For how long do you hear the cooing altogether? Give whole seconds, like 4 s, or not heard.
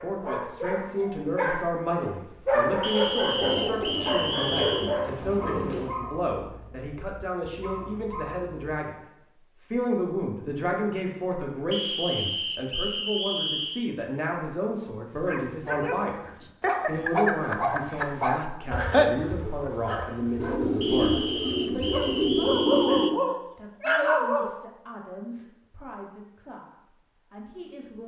5 s.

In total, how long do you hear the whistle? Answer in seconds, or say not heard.
7 s.